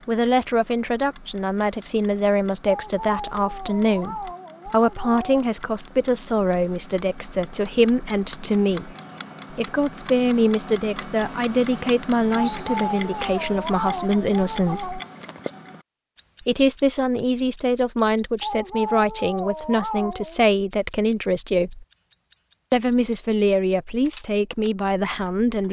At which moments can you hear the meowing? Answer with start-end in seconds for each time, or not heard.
2.6-5.5, 12.3-15.1, 18.4-20.5.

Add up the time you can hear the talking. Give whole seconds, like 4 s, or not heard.
23 s.